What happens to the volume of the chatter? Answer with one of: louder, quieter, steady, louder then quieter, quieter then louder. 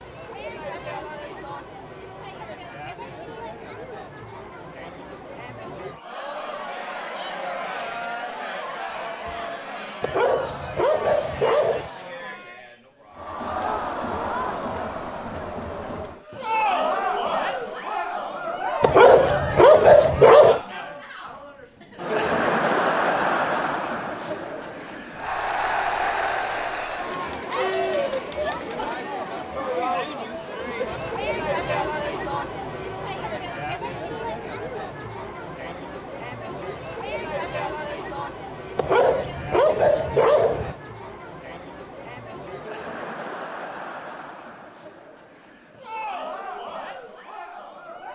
louder then quieter.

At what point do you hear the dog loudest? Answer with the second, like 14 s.
20 s.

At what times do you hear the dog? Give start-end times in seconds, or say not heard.
10.0-11.9, 18.8-20.6, 38.8-40.8.